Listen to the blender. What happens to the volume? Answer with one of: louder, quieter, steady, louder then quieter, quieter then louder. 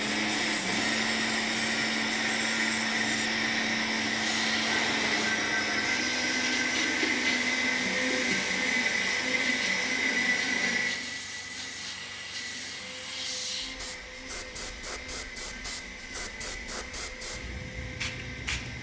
quieter.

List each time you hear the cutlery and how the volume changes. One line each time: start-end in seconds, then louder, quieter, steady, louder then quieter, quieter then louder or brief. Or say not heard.
not heard.